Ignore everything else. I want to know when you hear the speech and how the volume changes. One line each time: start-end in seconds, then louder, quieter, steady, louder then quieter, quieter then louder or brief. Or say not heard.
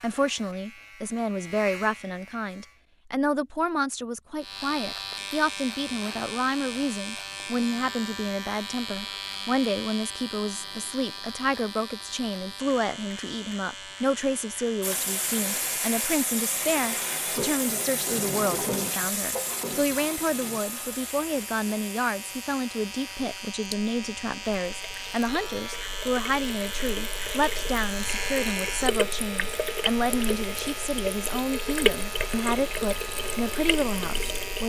0.0-34.6 steady.